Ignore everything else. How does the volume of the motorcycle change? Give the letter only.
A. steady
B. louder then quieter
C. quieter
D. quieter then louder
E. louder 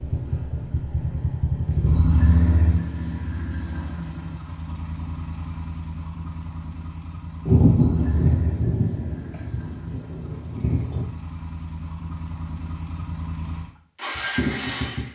D.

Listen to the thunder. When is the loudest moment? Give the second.
8 s.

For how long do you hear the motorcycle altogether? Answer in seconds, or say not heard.
15 s.